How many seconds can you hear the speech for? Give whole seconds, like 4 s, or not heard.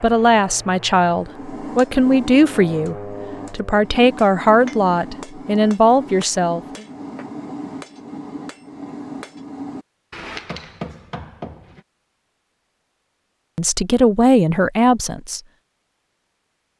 9 s.